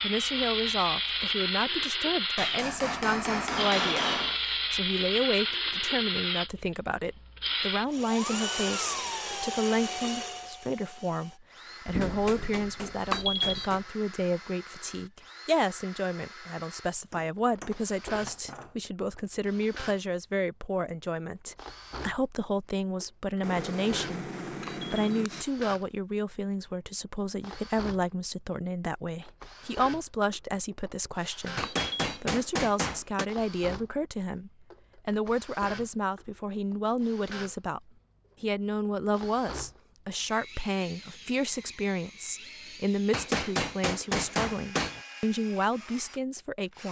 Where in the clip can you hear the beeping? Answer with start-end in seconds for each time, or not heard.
13.1-13.8, 24.6-25.2, 31.6-32.2.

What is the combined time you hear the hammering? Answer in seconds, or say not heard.
11 s.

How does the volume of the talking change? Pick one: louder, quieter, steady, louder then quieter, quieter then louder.
steady.